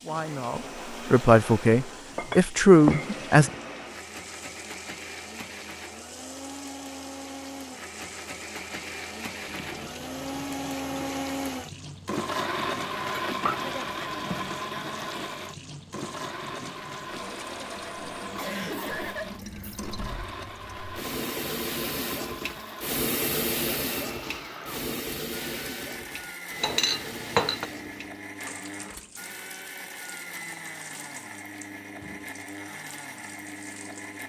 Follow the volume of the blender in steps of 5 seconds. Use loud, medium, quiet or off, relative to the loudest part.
medium, medium, loud, medium, medium, medium, medium.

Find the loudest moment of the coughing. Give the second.
19 s.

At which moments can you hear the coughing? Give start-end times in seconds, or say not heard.
18.4-20.2.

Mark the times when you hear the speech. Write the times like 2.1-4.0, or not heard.
0.0-3.5.